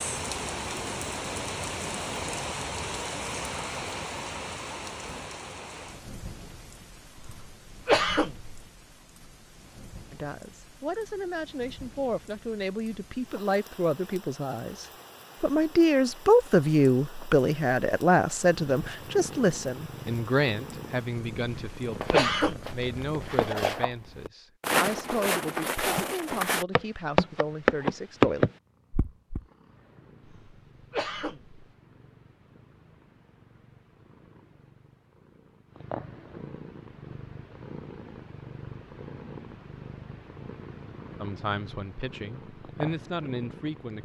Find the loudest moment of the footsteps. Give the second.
28 s.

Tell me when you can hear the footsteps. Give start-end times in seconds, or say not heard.
21.9-29.4.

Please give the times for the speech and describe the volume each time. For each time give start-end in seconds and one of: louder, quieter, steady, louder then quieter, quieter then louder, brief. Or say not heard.
10.1-28.4 louder then quieter
41.2-44.0 brief.